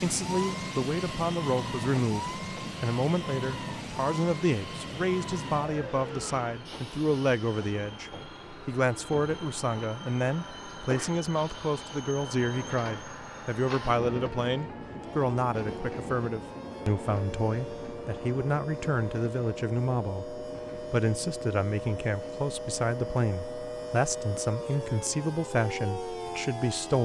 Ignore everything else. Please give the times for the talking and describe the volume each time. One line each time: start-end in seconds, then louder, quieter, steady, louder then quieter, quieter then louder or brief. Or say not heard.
0.0-27.0 steady.